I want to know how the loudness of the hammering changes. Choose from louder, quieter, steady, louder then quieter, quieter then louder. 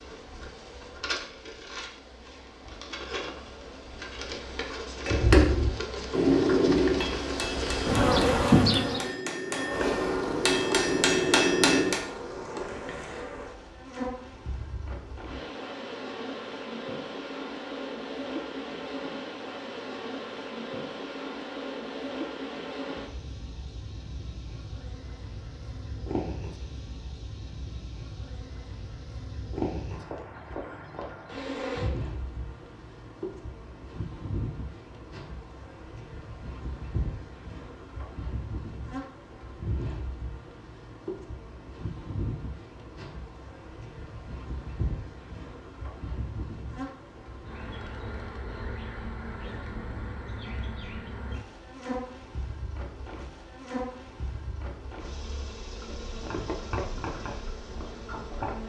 quieter then louder.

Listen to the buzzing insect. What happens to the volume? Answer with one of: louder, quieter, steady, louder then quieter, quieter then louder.
quieter.